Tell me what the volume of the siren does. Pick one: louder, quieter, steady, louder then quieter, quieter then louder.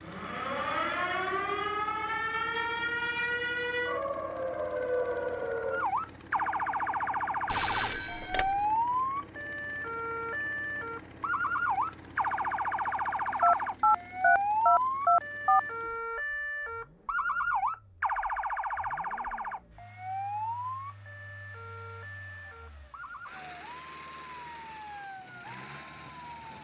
quieter.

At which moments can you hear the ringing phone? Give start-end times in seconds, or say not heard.
7.5-8.7, 13.4-15.6.